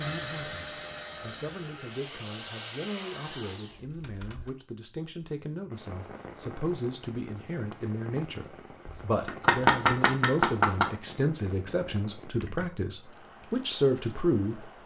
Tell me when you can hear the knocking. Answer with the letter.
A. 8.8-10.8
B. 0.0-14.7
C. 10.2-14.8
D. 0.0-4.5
A.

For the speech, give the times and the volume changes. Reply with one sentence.
The speech can be heard from 0.0 to 14.7 s, getting louder.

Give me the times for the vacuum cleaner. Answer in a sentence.
The vacuum cleaner can be heard from 0.0 to 4.5 s.